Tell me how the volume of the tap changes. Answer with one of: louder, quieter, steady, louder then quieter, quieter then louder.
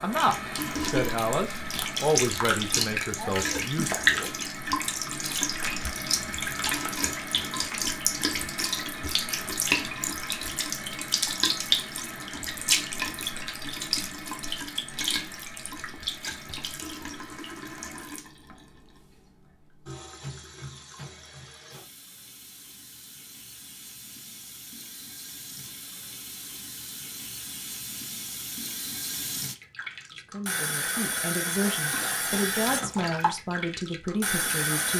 quieter then louder.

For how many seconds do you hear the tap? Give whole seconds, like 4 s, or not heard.
35 s.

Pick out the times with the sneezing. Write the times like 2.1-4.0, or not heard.
3.1-3.6.